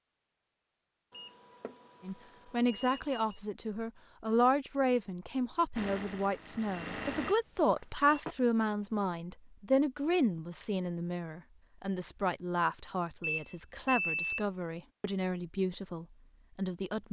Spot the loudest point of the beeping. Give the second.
14 s.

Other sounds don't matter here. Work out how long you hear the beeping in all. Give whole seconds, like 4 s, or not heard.
5 s.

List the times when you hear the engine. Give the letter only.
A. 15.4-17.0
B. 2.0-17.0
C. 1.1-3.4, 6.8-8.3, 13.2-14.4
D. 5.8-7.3
D.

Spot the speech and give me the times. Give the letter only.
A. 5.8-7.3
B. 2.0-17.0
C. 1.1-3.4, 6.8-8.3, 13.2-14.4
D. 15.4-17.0
B.